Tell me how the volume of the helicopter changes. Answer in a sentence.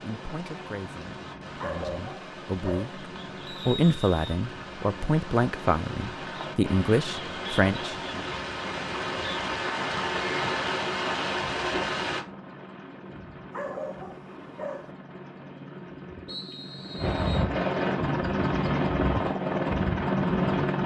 The volume of the helicopter goes up.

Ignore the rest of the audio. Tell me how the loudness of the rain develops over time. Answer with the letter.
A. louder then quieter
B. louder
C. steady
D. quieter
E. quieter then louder
B.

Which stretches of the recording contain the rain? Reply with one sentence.
The rain can be heard from 0.0 to 12.2 s.